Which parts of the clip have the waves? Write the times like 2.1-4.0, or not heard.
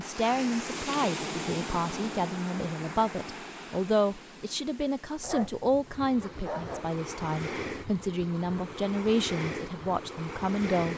0.0-10.9.